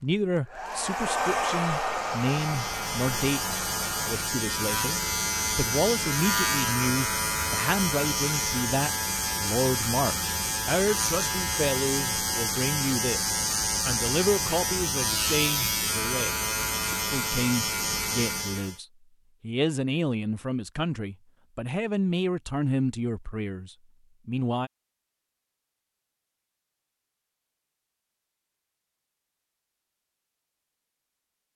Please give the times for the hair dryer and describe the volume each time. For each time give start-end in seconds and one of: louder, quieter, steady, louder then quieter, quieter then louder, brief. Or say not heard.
0.0-4.3 louder then quieter.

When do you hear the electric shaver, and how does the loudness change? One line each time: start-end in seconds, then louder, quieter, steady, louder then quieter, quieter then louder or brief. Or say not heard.
1.9-18.8 steady.